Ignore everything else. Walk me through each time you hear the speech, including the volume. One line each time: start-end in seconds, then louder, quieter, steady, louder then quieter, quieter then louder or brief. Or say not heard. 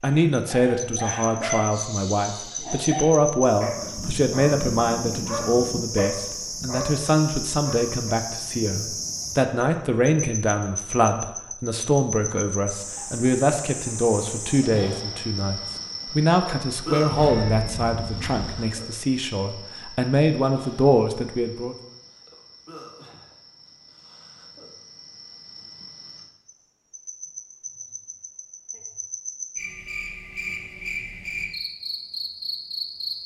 0.0-21.8 steady.